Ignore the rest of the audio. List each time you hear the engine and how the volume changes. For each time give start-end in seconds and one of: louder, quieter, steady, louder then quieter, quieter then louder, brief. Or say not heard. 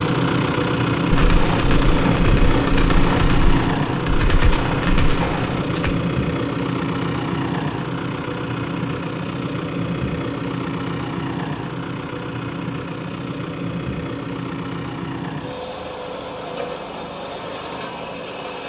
0.0-18.6 quieter.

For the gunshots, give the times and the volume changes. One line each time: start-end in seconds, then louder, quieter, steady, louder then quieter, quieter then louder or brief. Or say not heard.
1.1-6.0 steady.